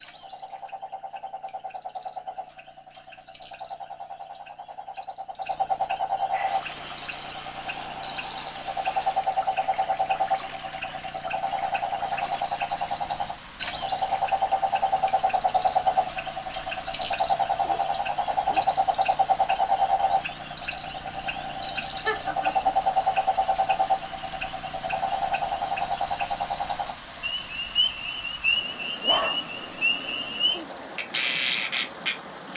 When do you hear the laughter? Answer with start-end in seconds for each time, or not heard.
21.8-22.7.